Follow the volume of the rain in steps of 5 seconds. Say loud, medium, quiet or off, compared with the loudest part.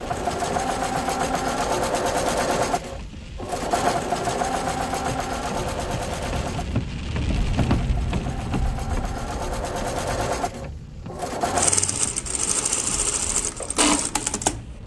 medium, loud, medium.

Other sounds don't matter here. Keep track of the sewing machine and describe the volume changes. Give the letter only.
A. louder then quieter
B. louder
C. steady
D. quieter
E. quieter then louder
E.